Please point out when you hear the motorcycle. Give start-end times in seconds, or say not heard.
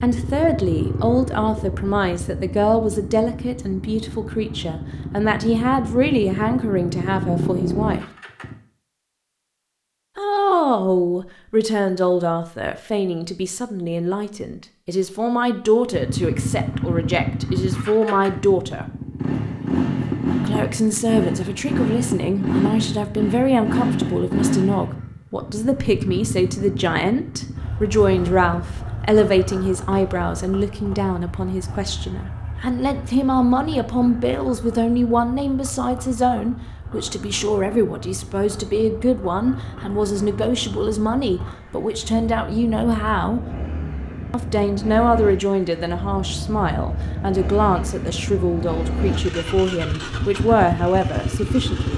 0.0-8.6, 15.9-51.9.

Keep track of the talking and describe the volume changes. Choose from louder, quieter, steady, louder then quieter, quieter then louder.
steady.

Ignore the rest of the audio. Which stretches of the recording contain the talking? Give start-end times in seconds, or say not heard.
0.0-8.1, 10.2-18.9, 20.4-43.5, 44.3-51.9.